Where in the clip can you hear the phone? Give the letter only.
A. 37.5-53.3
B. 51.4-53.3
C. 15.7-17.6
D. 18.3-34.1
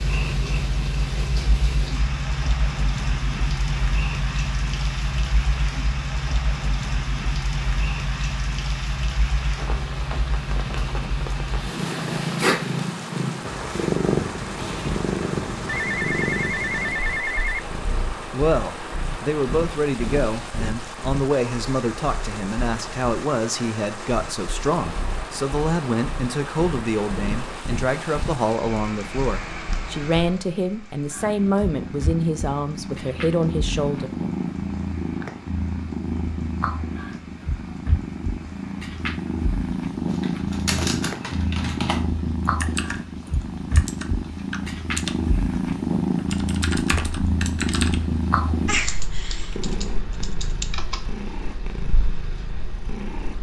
C.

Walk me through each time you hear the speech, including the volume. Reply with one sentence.
You can hear the speech from 18.3 to 34.1 s, at a steady volume.